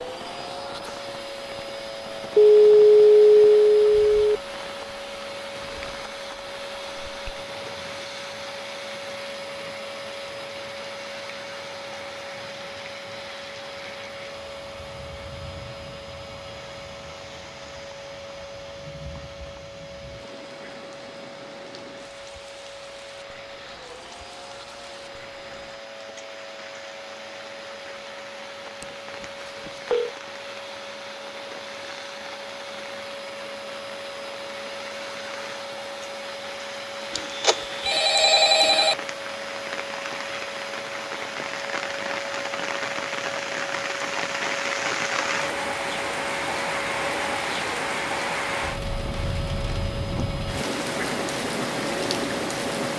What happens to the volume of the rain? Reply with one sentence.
The volume of the rain goes up.